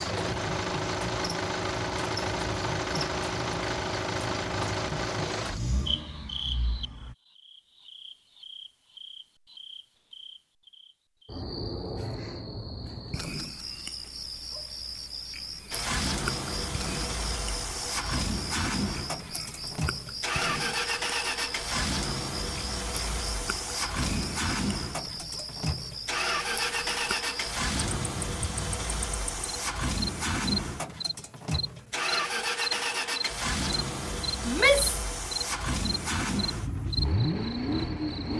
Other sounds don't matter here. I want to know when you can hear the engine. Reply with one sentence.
The engine can be heard from 0.0 to 7.2 s and from 15.7 to 38.3 s.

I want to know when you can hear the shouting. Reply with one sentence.
The shouting can be heard from 34.5 to 35.0 s.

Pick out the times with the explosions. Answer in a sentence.
The explosions can't be heard in this clip.